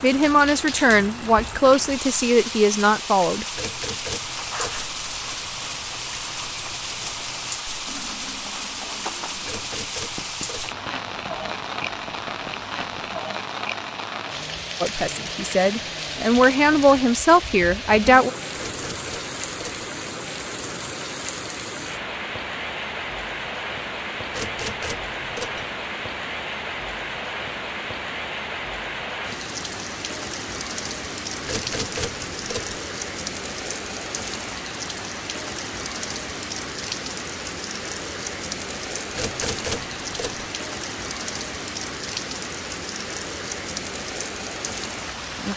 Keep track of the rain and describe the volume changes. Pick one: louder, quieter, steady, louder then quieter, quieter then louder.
steady.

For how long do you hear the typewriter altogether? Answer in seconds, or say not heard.
8 s.